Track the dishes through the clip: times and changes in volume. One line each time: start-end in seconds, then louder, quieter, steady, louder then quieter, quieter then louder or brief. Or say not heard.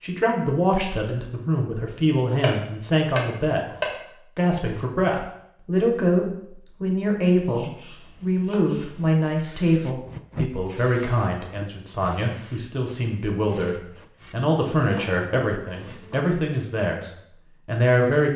not heard.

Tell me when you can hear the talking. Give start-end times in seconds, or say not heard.
0.0-18.3.